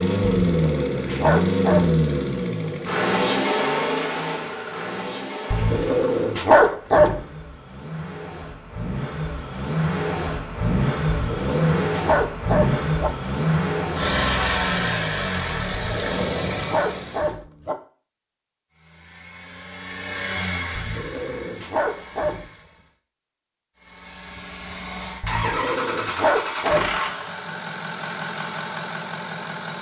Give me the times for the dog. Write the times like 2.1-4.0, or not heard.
0.5-2.0, 5.5-7.2, 11.1-13.1, 15.7-17.8, 20.8-22.5, 25.2-27.0.